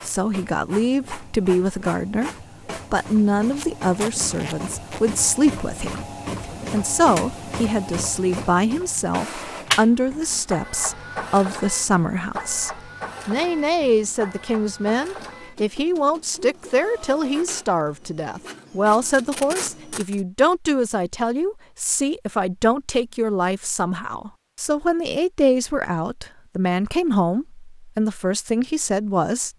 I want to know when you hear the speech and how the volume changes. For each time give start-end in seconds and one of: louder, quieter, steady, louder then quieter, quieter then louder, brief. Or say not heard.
0.0-2.3 brief
2.9-29.5 steady.